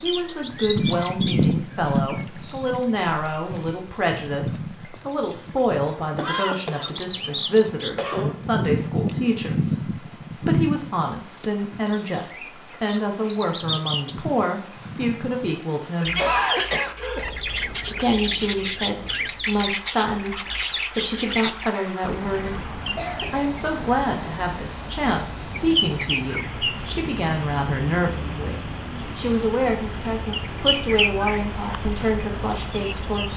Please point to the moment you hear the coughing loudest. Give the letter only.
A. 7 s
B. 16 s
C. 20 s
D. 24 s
B.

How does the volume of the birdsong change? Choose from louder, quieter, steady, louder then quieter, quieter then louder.
steady.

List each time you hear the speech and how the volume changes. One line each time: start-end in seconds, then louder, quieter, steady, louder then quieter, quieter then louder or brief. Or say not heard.
0.0-16.2 steady
17.9-33.3 steady.